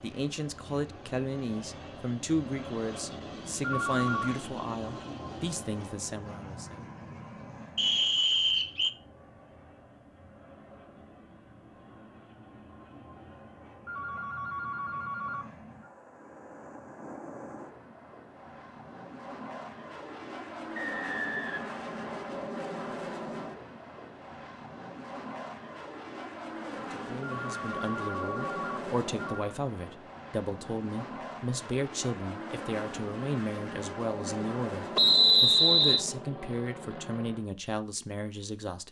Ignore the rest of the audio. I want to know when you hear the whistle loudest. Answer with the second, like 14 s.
35 s.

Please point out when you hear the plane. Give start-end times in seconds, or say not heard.
0.0-37.5.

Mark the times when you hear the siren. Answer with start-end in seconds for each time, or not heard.
not heard.